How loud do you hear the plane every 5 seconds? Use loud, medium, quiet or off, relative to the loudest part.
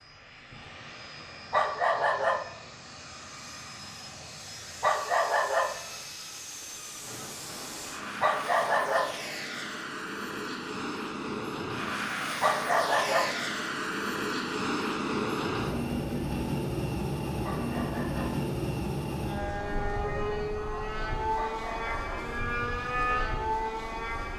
quiet, medium, loud, loud, loud.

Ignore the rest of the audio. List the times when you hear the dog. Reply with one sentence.
You can hear the dog from 1.5 to 2.5 s, from 4.8 to 5.8 s, from 8.2 to 9.2 s, from 12.4 to 13.3 s, from 17.4 to 18.4 s and from 21.4 to 22.3 s.